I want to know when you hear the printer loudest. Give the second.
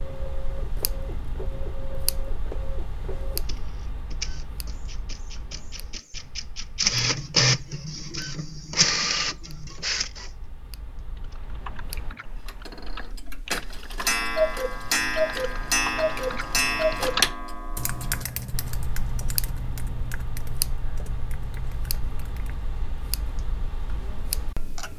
7 s.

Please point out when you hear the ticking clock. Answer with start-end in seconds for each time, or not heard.
0.0-24.9.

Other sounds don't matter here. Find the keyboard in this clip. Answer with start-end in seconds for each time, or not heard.
11.2-22.7.